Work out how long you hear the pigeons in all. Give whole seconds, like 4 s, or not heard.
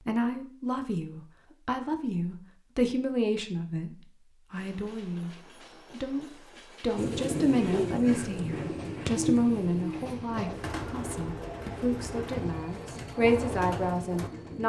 8 s.